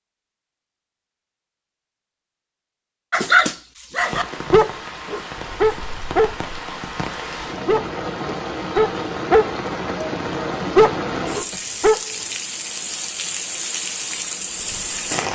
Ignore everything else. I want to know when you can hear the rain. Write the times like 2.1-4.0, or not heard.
4.0-15.2.